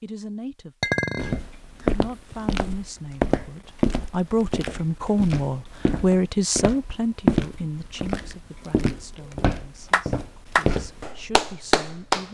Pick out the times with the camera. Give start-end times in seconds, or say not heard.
not heard.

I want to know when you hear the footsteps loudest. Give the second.
7 s.